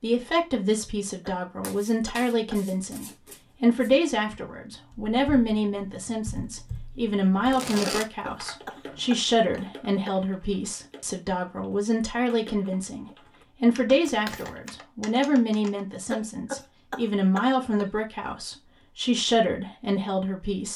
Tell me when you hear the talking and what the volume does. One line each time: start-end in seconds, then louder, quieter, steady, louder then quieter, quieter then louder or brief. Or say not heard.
0.0-20.7 steady.